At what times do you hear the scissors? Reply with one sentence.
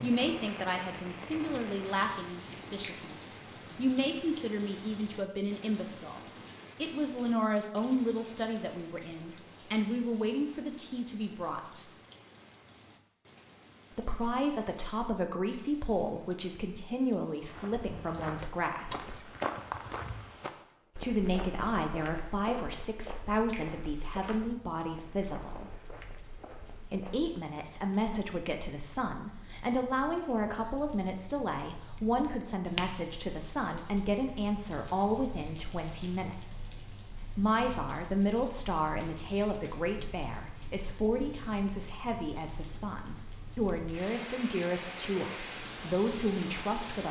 The scissors can be heard from 18.4 to 19.4 s.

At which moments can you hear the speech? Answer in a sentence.
You can hear the speech from 0.0 to 6.2 s, from 6.8 to 11.8 s, from 13.9 to 19.1 s, from 21.0 to 25.7 s, from 26.9 to 36.5 s and from 37.4 to 47.0 s.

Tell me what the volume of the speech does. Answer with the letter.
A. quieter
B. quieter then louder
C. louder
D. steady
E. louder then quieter
D.